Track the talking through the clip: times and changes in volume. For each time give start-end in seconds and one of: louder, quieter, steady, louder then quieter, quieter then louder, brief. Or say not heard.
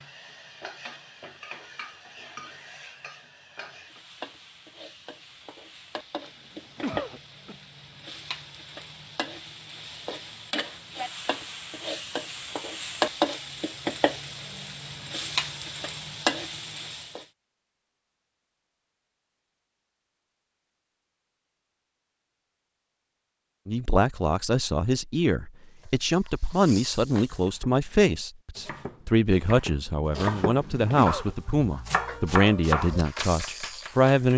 23.6-34.3 steady.